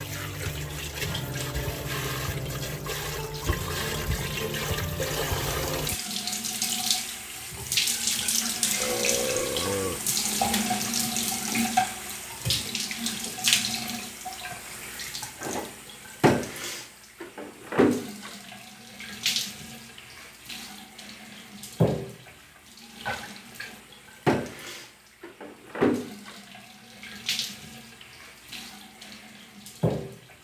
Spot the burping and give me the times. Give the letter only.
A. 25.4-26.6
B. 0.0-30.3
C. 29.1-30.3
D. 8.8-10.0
D.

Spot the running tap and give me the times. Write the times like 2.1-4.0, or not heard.
0.0-30.3.